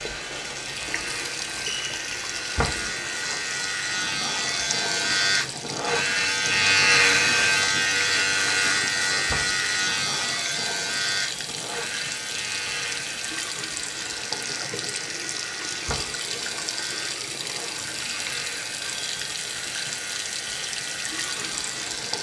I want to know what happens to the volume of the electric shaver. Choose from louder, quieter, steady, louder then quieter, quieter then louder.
louder then quieter.